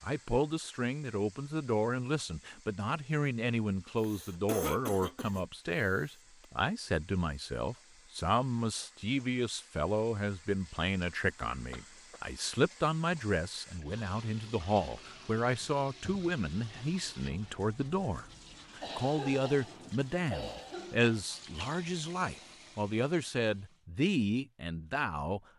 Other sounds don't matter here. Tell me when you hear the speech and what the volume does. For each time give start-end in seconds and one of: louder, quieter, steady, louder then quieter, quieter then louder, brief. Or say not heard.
0.0-25.4 steady.